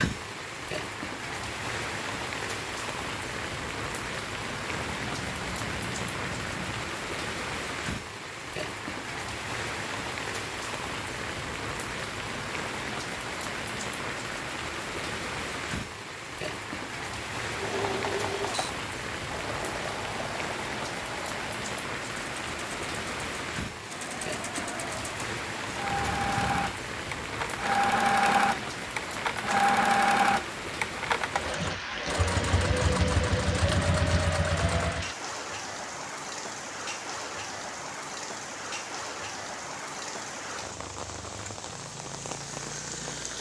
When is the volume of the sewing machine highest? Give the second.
30 s.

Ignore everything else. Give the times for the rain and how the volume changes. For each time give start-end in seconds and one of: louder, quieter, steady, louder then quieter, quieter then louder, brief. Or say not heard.
0.0-43.3 steady.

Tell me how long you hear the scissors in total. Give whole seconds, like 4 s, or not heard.
5 s.